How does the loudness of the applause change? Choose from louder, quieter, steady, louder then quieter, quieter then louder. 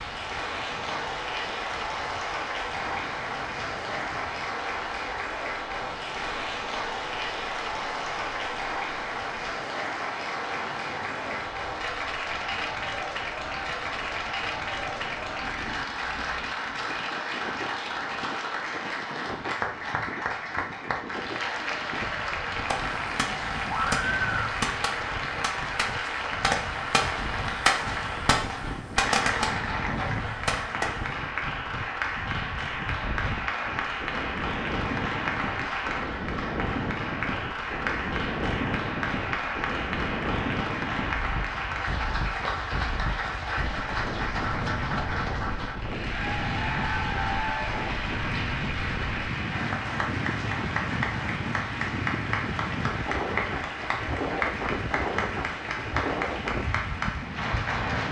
steady.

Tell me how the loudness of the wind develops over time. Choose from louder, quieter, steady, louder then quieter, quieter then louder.
louder.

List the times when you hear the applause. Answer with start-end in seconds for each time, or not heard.
0.0-58.0.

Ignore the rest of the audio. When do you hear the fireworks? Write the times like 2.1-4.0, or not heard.
22.6-31.1.